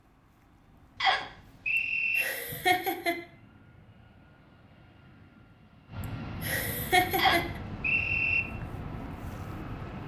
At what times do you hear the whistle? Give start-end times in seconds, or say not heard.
1.0-2.2, 7.2-8.4.